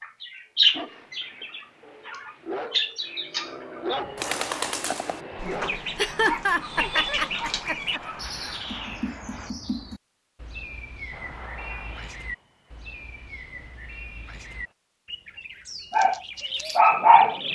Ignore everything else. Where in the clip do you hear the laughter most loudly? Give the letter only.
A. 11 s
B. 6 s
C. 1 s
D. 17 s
B.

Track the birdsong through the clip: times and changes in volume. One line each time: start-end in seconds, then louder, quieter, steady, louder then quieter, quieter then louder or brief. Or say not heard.
0.0-17.5 quieter.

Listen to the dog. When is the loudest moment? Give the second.
17 s.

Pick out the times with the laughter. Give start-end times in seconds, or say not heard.
6.0-8.0.